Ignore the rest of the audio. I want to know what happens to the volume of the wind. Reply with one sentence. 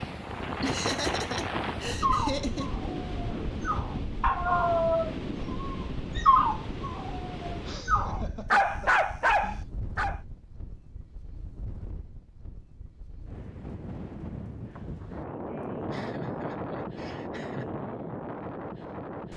The loudness of the wind goes down, then up.